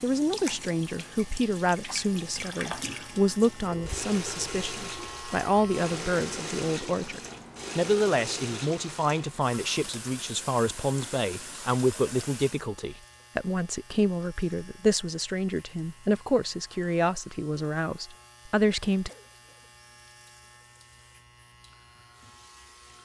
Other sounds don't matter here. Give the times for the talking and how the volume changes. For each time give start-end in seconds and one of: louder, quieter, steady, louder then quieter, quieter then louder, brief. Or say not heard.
0.0-19.1 steady.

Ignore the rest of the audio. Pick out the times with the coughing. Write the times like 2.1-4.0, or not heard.
19.1-19.7.